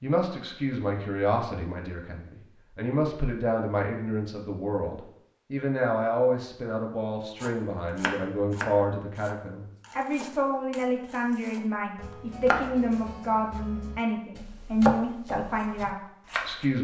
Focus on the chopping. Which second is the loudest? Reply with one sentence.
The loudest moment of the chopping is at 15 seconds.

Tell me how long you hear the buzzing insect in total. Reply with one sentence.
You can't hear the buzzing insect here.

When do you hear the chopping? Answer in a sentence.
The chopping can be heard from 7.4 to 16.6 s.